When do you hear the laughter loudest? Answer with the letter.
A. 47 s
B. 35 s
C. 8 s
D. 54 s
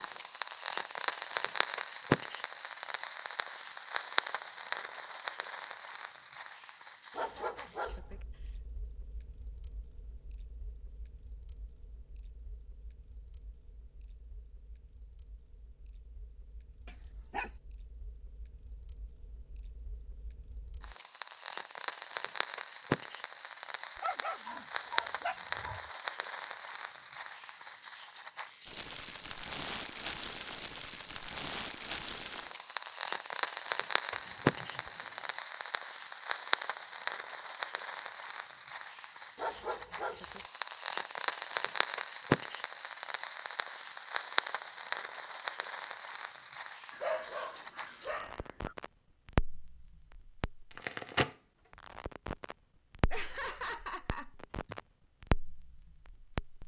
D.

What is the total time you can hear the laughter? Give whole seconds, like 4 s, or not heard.
4 s.